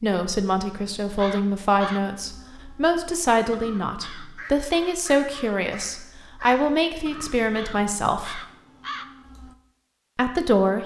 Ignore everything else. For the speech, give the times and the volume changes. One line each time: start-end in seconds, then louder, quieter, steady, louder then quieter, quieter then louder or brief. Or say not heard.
0.0-8.4 steady
10.2-10.8 brief.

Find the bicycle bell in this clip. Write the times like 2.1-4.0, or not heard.
not heard.